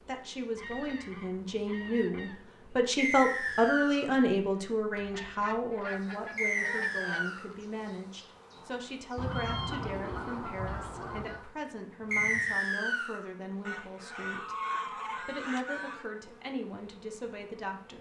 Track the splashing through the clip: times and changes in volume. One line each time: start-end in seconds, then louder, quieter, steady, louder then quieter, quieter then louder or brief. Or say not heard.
not heard.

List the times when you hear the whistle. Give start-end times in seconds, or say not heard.
3.0-4.1, 6.3-7.5, 12.1-13.2.